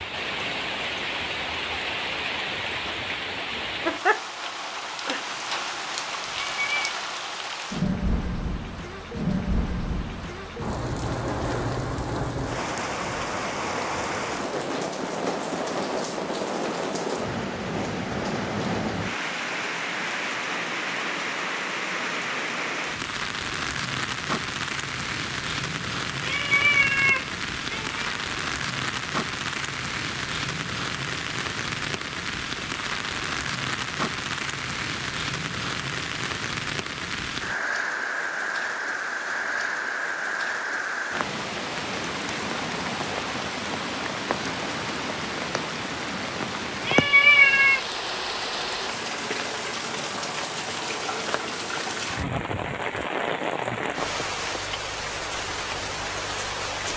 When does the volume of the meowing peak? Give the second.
47 s.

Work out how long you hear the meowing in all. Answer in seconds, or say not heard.
4 s.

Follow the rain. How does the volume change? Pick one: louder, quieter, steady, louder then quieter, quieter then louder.
steady.